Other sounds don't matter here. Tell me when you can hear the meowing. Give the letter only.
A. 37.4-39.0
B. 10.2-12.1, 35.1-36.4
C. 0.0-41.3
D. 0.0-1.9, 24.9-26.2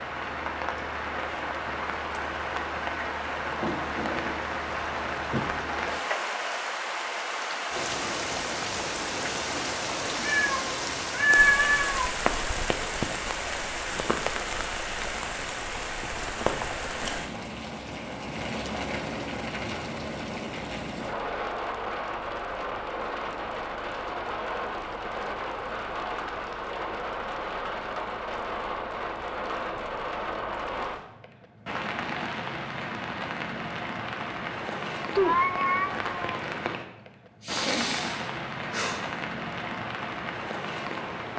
B.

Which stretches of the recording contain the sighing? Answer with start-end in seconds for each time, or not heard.
37.4-39.0.